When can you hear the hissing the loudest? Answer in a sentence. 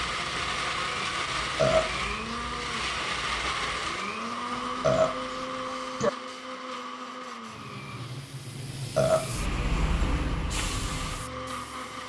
The loudest moment of the hissing is at 10 seconds.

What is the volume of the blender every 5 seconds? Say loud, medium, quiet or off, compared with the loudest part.
loud, medium, medium.